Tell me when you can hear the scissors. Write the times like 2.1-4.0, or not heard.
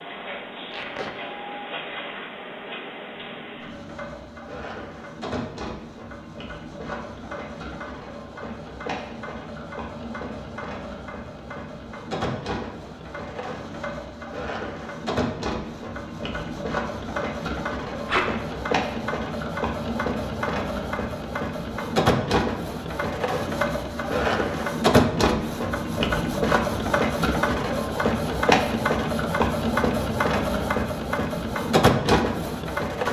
not heard.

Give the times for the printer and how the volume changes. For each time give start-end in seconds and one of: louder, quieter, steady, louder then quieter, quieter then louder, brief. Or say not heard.
0.0-33.0 louder.